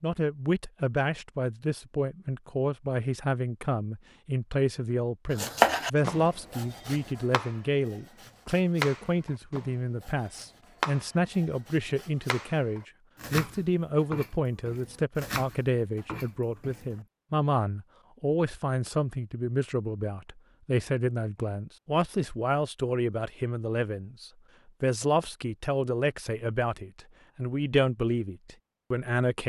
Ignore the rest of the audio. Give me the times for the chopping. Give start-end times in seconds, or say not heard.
5.3-16.9.